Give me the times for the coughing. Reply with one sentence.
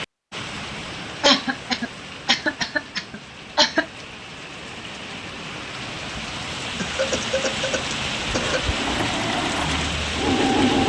The coughing can be heard from 1.2 to 3.9 s and from 6.8 to 8.7 s.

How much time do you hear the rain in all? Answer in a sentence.
You can hear the rain for 11 seconds altogether.